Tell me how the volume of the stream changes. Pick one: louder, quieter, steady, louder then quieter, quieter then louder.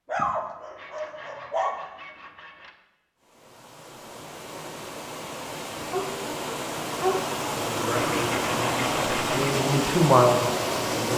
louder.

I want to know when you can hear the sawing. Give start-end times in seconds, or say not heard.
0.8-2.8, 8.0-9.6.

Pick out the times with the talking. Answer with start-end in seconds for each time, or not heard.
7.7-11.1.